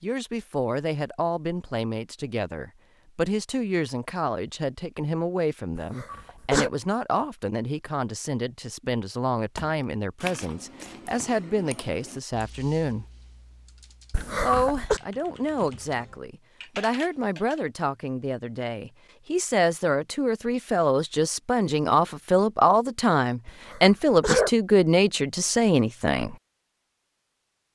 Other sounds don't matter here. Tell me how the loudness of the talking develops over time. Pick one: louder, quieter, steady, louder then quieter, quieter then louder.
louder.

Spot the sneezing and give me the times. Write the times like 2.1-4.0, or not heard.
5.8-6.7, 14.1-15.0, 23.4-24.5.